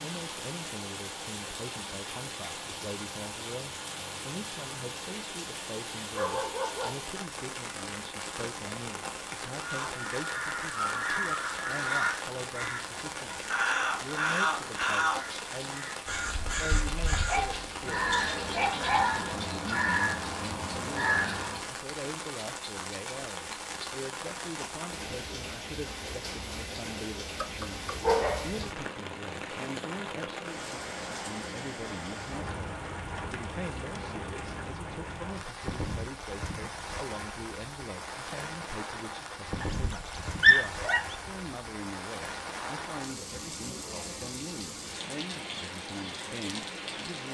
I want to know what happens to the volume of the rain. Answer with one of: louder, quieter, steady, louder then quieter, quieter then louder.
steady.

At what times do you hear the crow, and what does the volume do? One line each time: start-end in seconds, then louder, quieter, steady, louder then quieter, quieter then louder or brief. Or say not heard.
9.6-21.6 steady.